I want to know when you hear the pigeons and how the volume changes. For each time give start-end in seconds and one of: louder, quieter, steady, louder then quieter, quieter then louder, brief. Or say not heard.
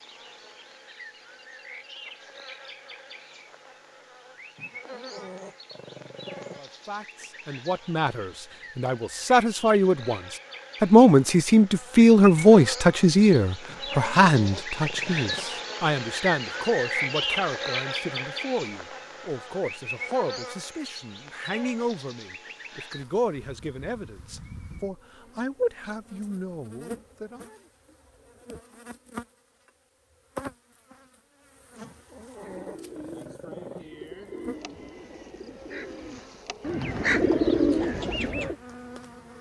32.4-38.5 louder.